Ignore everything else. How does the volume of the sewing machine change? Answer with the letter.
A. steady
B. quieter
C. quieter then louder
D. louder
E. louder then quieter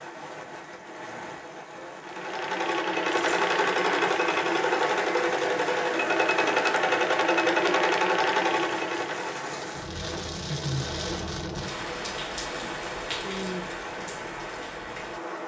A.